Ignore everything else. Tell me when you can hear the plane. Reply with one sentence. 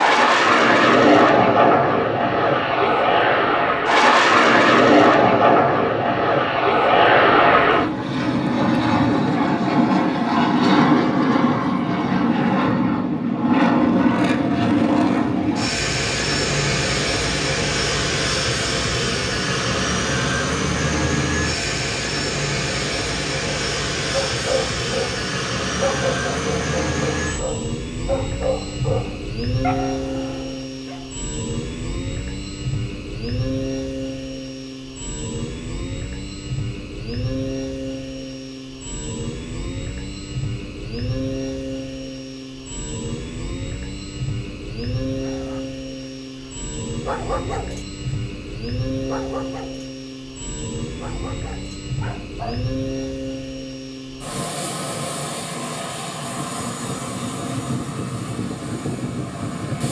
The plane can be heard from 0.0 to 59.8 s.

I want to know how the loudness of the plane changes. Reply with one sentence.
The volume of the plane goes down.